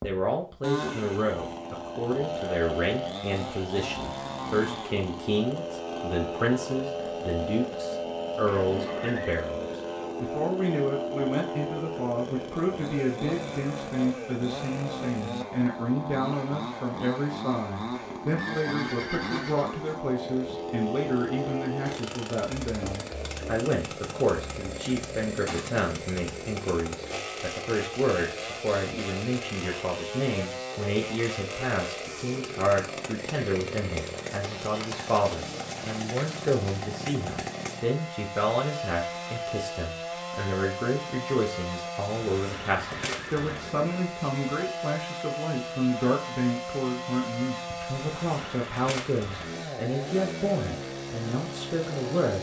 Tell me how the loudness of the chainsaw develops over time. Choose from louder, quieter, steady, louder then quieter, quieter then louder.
steady.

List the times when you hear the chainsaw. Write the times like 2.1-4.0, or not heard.
0.0-52.3.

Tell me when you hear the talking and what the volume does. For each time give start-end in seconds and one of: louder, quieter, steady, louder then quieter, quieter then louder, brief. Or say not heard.
0.0-52.3 steady.